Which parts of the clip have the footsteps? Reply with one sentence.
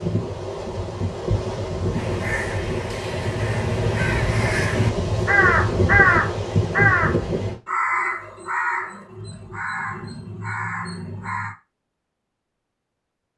The footsteps can't be heard in this clip.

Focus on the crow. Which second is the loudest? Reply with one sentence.
The loudest moment of the crow is at 6 seconds.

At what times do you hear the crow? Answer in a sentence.
The crow can be heard from 1.9 to 11.6 s.